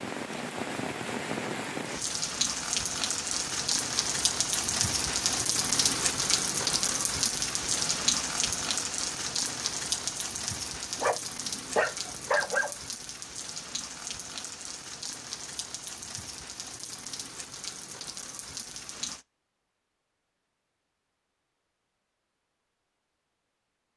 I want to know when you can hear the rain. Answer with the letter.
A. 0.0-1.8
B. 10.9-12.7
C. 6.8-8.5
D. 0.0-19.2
D.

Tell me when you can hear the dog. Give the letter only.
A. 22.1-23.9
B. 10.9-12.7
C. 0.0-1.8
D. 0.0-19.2
B.